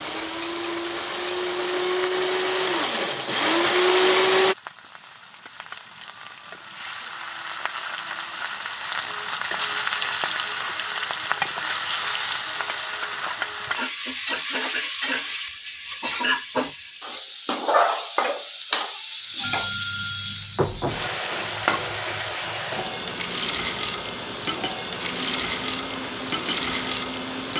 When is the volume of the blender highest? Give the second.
4 s.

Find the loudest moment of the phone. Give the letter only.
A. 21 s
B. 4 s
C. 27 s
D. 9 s
A.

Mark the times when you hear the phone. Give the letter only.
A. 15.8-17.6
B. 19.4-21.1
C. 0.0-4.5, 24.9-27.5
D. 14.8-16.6
B.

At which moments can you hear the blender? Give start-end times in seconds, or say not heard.
0.0-4.5, 24.9-27.5.